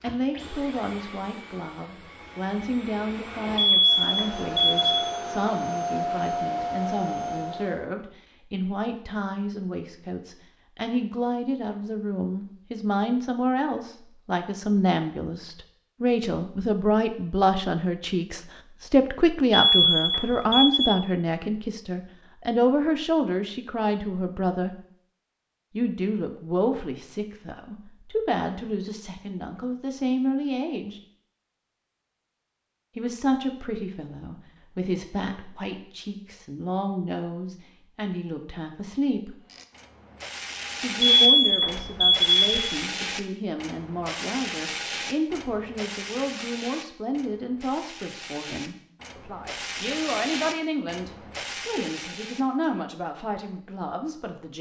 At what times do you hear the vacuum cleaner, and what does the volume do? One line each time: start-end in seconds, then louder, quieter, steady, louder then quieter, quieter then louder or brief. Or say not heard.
0.0-7.8 louder.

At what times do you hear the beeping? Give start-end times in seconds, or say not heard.
3.5-4.9, 19.5-20.9, 41.1-42.8.